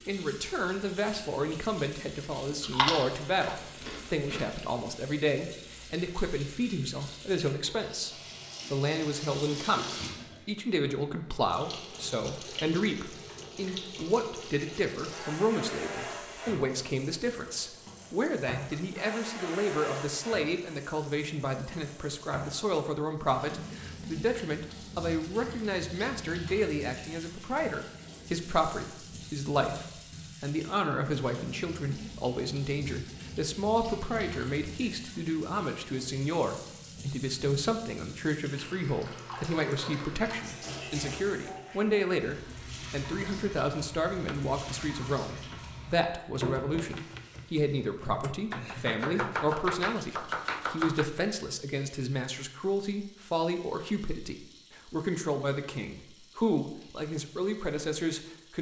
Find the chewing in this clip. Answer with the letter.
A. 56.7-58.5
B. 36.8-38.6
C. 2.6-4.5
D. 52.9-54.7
C.